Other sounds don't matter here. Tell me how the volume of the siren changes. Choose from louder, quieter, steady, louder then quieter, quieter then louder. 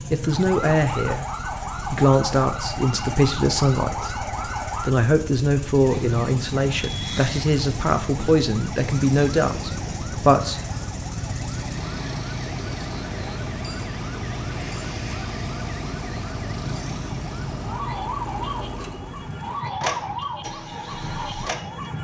steady.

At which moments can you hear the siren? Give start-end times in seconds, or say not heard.
0.0-21.9.